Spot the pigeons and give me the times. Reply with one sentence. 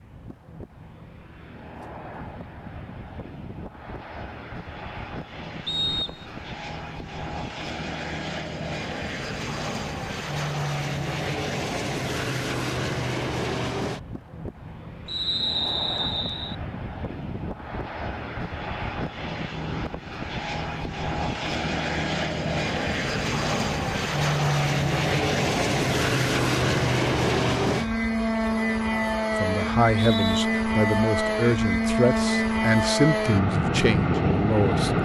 You can't hear the pigeons here.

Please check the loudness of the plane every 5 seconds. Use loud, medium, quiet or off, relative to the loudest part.
quiet, medium, medium, medium, loud, loud, loud.